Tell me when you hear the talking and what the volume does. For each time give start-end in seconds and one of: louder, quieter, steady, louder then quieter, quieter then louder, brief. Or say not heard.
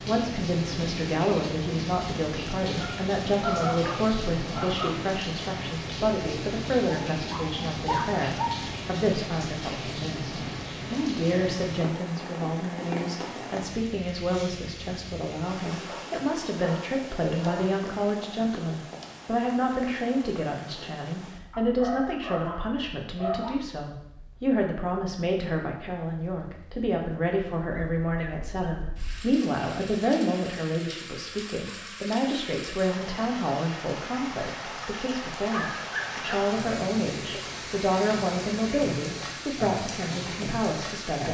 0.1-41.2 steady.